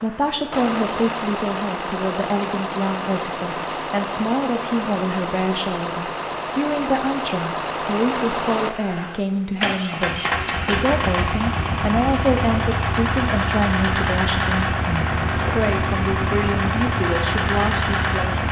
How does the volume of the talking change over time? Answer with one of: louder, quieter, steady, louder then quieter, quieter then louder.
steady.